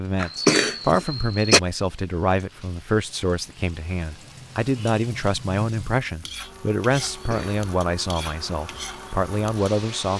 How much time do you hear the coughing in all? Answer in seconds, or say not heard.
2 s.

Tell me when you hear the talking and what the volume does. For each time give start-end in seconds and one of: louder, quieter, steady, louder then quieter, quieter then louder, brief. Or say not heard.
0.0-10.1 steady.